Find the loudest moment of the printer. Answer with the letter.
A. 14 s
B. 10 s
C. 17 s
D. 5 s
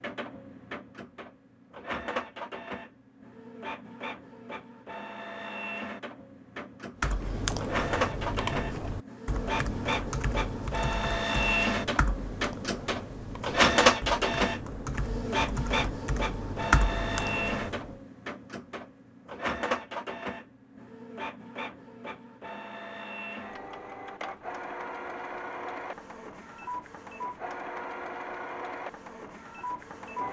A.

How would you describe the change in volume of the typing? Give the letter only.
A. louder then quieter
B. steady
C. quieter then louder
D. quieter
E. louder
C.